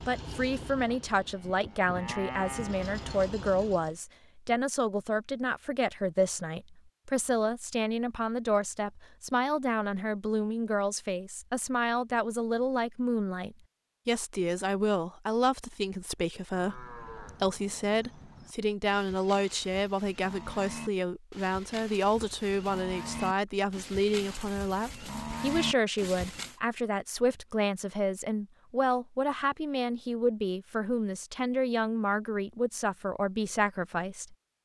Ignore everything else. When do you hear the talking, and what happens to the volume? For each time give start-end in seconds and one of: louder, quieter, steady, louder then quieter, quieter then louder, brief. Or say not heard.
0.1-34.6 steady.